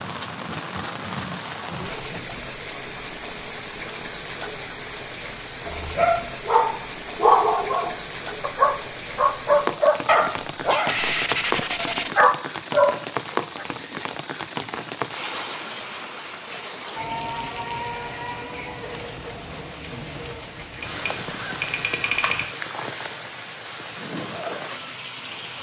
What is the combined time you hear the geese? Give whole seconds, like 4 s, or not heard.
2 s.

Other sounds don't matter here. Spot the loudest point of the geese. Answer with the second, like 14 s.
22 s.